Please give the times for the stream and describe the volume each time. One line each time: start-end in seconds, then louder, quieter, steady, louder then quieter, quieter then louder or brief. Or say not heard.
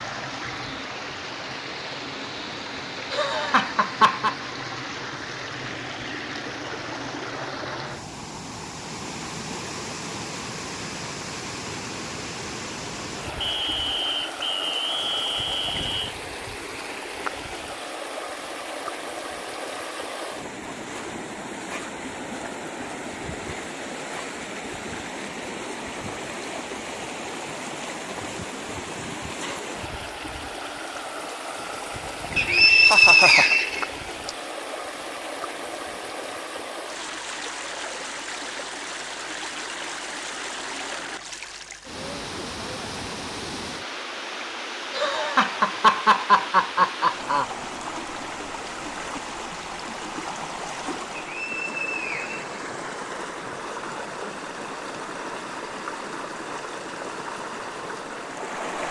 0.0-58.8 steady.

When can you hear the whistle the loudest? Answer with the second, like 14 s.
33 s.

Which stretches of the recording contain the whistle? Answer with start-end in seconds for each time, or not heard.
13.4-16.1, 32.4-34.3, 51.1-52.5.